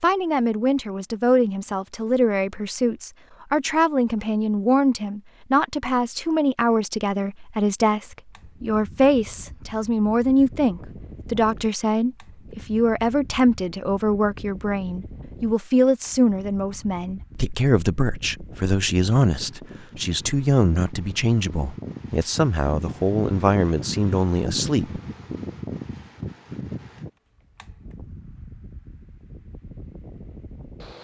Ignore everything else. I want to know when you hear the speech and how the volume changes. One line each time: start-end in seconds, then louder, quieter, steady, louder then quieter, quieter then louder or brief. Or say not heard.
0.0-25.0 steady.